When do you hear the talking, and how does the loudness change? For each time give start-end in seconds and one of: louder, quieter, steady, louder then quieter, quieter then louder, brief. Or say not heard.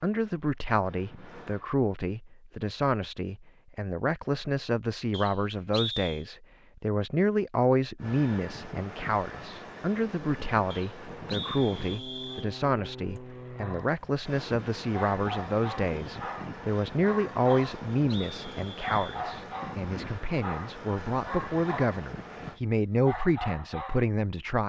0.0-24.6 steady.